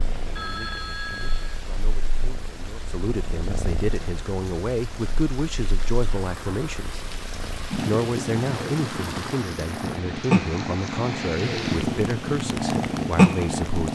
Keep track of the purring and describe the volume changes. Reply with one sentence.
The loudness of the purring goes up.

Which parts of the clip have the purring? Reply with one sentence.
You can hear the purring from 0.0 to 13.8 s.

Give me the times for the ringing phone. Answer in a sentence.
The ringing phone can be heard from 0.3 to 1.6 s.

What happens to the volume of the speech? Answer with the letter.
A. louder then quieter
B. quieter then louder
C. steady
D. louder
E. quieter
D.